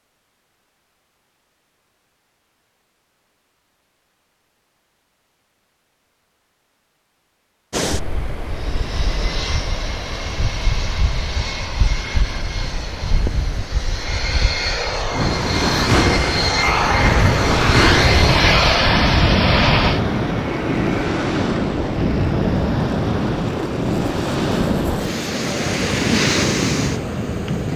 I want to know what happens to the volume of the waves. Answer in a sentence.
The volume of the waves goes up.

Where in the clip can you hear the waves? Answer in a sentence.
The waves can be heard from 7.7 to 27.7 s.